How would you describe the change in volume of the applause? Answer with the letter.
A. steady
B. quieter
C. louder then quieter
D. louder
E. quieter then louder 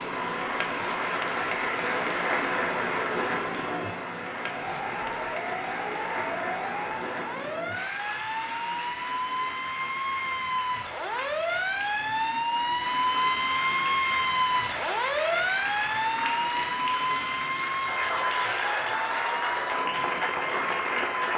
E.